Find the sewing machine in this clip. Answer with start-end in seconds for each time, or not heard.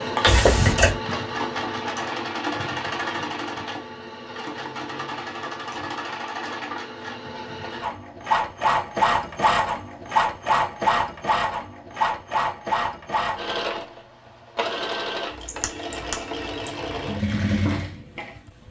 0.0-18.6.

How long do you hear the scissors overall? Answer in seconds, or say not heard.
2 s.